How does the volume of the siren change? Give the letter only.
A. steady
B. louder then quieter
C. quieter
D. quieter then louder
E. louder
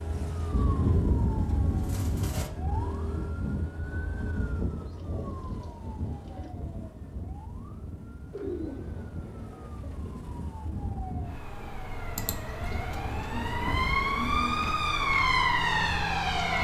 D.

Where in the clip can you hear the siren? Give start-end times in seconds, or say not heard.
0.0-16.5.